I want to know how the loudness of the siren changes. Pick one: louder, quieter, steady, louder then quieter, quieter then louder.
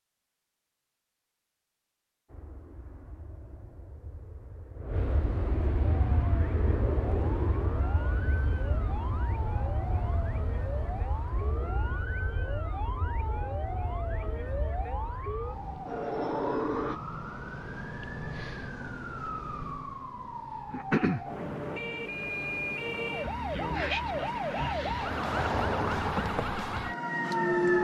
louder.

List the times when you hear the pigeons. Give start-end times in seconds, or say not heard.
not heard.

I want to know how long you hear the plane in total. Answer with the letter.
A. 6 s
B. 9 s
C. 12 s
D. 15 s
D.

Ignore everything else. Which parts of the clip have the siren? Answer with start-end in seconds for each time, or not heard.
5.8-27.7.